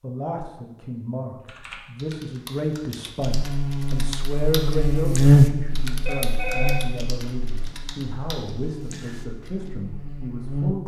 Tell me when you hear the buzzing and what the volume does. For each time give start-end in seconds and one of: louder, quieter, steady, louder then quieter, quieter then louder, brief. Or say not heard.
3.2-10.8 louder then quieter.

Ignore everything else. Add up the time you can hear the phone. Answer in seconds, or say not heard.
2 s.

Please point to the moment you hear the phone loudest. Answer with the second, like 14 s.
7 s.